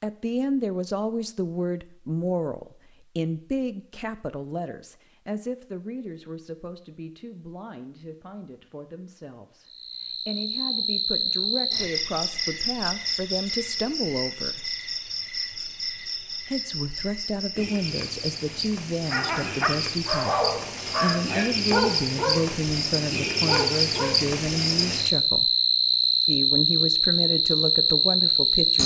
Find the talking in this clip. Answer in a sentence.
You can hear the talking from 0.0 to 14.6 s, from 16.4 to 25.5 s and from 26.2 to 28.8 s.